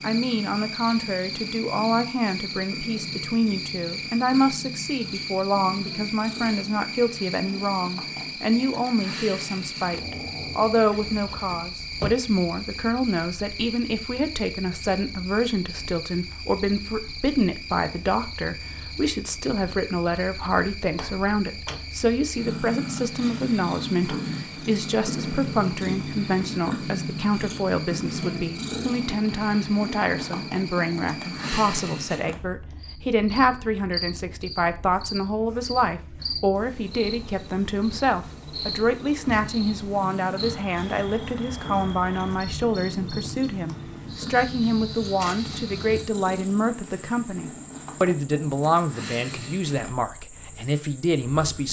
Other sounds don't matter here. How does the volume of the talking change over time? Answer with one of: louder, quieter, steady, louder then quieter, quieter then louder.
steady.